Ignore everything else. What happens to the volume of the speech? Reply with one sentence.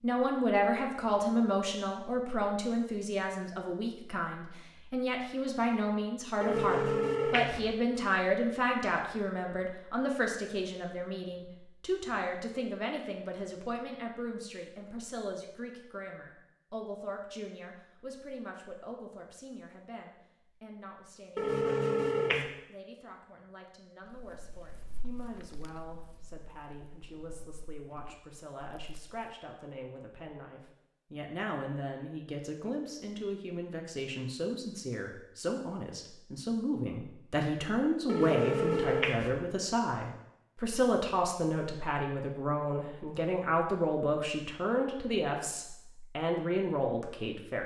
The volume of the speech goes down, then up.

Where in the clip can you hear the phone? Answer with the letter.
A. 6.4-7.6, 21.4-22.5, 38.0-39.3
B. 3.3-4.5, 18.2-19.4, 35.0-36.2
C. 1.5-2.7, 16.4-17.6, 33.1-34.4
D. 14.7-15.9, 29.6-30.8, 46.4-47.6
A.